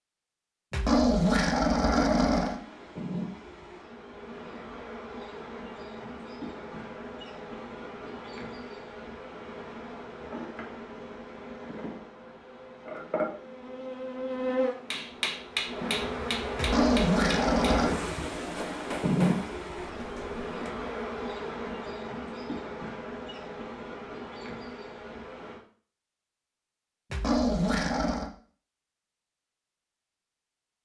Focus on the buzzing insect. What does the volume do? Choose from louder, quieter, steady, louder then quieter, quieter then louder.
louder then quieter.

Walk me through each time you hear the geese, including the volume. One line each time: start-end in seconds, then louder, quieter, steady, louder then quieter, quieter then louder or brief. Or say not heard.
not heard.